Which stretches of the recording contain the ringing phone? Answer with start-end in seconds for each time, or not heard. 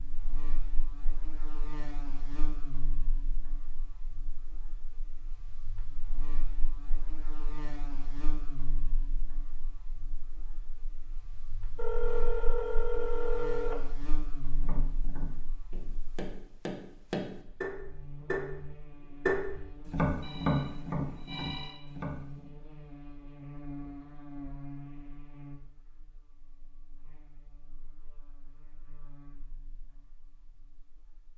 11.8-13.8, 20.2-21.8.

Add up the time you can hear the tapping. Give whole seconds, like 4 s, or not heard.
8 s.